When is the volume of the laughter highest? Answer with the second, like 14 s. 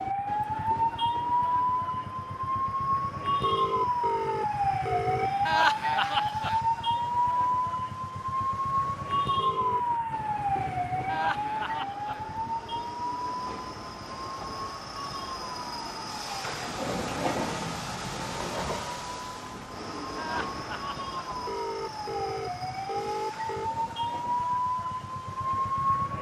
6 s.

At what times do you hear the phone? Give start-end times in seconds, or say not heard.
3.4-5.3, 9.3-9.8, 21.4-23.7.